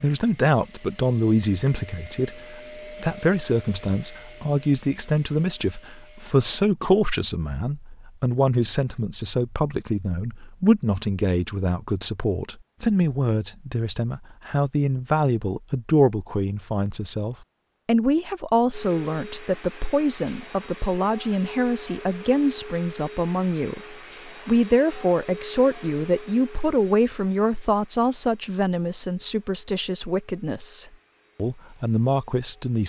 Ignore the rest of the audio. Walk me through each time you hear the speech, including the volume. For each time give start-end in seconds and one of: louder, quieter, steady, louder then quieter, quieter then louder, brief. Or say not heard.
0.0-32.8 steady.